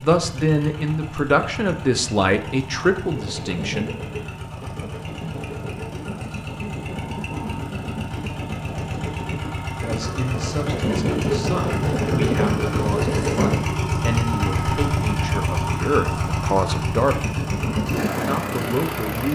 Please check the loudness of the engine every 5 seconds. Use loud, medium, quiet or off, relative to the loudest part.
medium, medium, loud, loud.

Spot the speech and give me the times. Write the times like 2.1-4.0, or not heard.
0.0-3.9, 9.8-17.3, 18.2-19.2.